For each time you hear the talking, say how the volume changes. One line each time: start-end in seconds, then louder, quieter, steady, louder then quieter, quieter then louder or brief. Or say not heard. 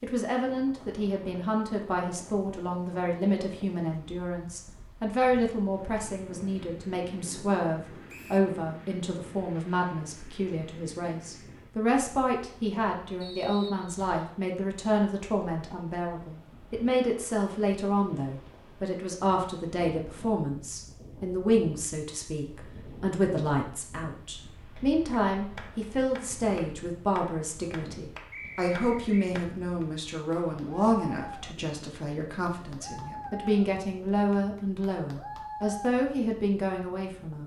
0.0-37.4 steady.